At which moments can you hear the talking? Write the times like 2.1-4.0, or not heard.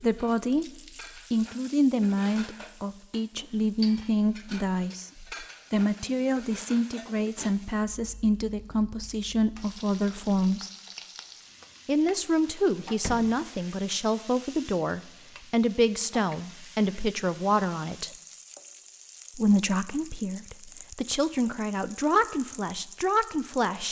0.0-0.7, 1.3-10.7, 11.8-18.1, 19.4-23.8.